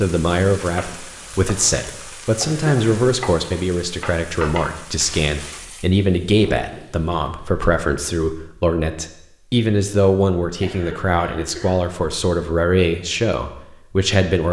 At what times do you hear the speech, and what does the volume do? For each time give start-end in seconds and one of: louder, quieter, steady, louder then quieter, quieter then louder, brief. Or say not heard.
0.0-14.4 steady.